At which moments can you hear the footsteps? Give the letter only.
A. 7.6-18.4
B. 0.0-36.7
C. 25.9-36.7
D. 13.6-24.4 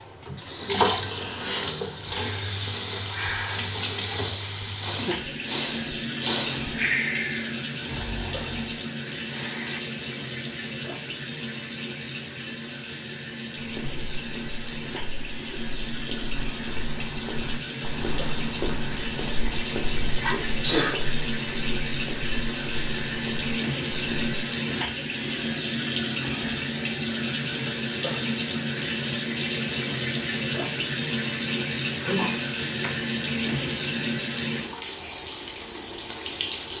D.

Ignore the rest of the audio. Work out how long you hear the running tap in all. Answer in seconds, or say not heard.
37 s.